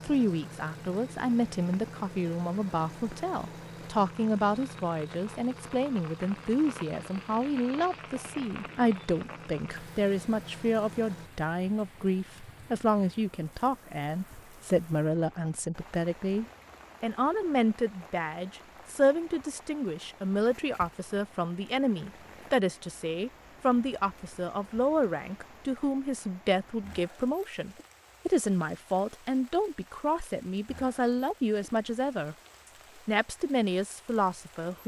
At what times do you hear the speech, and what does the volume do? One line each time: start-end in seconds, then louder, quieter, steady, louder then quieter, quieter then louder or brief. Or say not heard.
0.0-32.4 steady
33.0-34.8 brief.